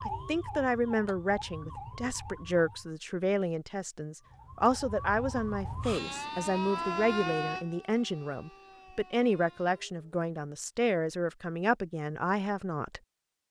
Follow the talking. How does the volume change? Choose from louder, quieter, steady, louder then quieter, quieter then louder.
steady.